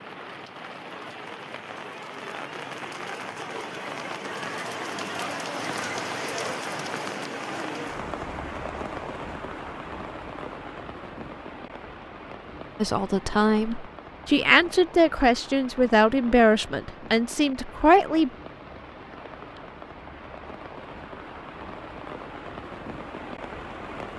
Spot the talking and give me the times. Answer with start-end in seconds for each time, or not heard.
12.8-18.3.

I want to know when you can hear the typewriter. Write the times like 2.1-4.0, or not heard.
not heard.